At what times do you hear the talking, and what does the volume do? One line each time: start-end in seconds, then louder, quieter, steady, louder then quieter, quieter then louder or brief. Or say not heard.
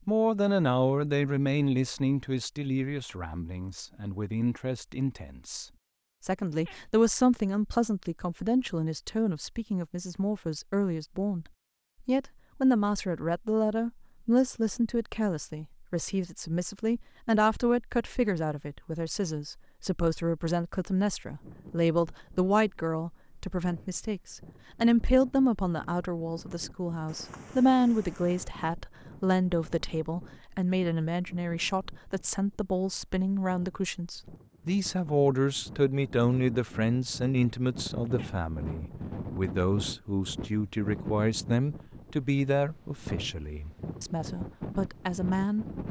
0.1-45.6 steady.